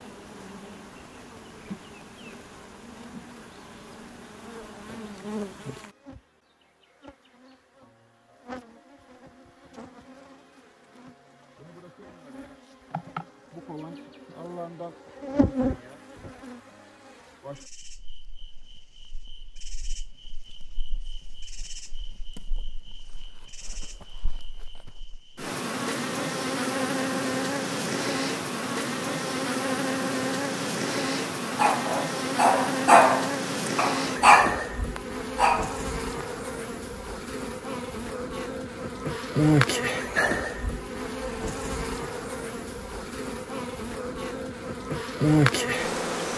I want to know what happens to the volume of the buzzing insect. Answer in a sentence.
The volume of the buzzing insect goes up.